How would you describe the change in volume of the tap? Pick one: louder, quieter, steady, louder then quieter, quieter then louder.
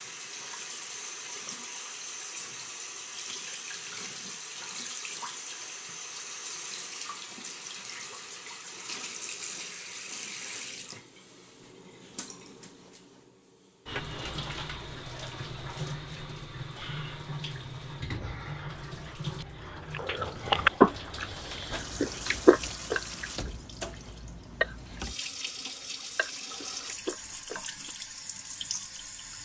steady.